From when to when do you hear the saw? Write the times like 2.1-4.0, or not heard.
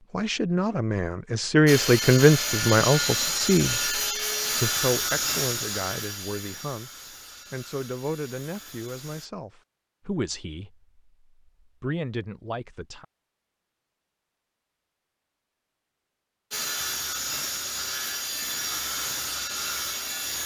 1.6-9.3, 16.5-20.4.